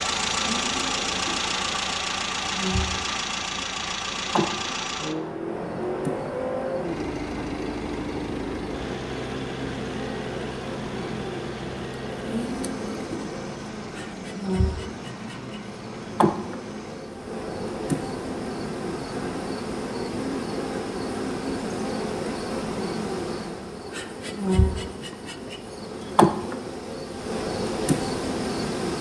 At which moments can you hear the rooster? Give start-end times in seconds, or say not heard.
not heard.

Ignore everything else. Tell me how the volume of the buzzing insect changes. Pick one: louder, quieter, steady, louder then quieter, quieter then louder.
louder.